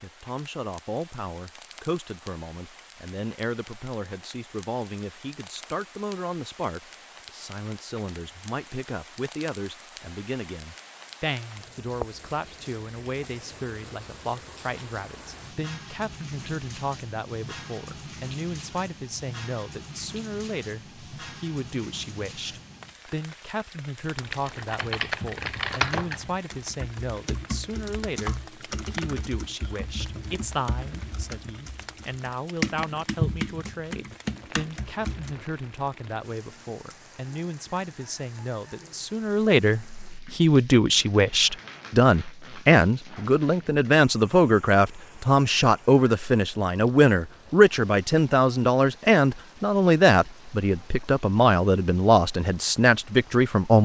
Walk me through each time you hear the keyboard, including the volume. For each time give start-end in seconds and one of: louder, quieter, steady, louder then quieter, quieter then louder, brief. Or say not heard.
24.2-35.5 quieter then louder.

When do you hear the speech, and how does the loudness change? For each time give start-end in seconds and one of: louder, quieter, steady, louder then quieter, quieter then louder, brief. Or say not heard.
0.0-53.8 louder.